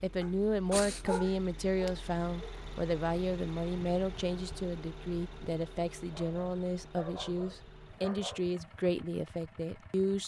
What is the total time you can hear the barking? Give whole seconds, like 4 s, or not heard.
5 s.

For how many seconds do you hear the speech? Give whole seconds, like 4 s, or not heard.
10 s.